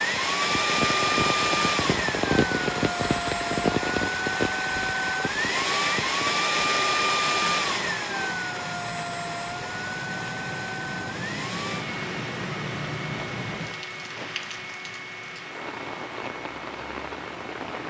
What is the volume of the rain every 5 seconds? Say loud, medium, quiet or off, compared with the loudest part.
loud, medium, medium, medium.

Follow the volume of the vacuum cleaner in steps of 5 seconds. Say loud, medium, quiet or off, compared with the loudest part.
loud, loud, medium, quiet.